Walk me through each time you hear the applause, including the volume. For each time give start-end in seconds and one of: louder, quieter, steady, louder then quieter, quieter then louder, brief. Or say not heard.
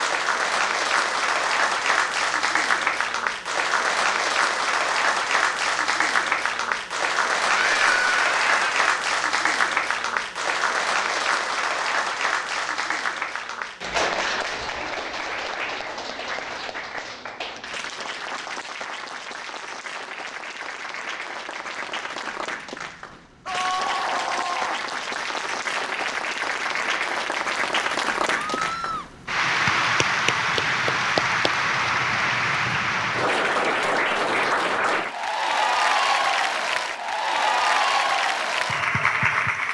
0.0-39.6 quieter then louder.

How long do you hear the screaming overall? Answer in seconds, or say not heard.
3 s.